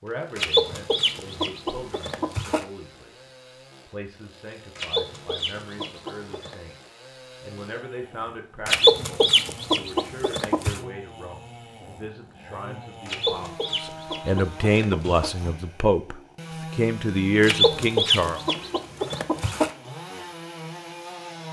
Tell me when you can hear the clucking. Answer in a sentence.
You can hear the clucking from 0.3 to 2.6 s, from 4.8 to 6.5 s, from 8.7 to 10.8 s, from 13.1 to 15.3 s and from 17.4 to 19.7 s.